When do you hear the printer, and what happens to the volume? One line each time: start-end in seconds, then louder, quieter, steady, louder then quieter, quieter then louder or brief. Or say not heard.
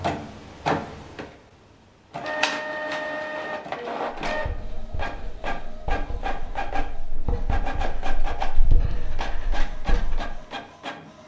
0.0-11.2 quieter.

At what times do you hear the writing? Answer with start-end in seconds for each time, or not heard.
4.3-10.3.